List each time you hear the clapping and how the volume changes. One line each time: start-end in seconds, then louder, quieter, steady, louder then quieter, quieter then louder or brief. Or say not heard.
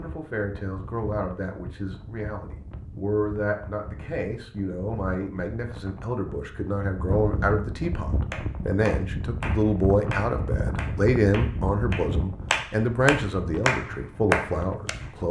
8.3-15.1 louder.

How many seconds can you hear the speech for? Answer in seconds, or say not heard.
15 s.